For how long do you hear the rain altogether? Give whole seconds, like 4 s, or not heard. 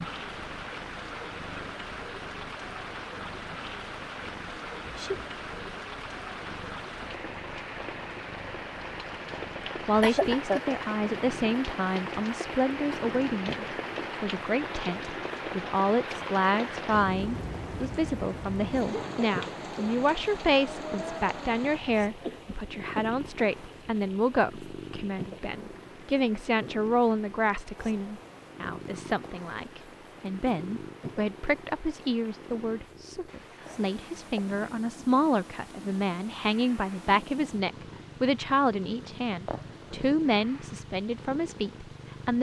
42 s.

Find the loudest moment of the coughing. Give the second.
10 s.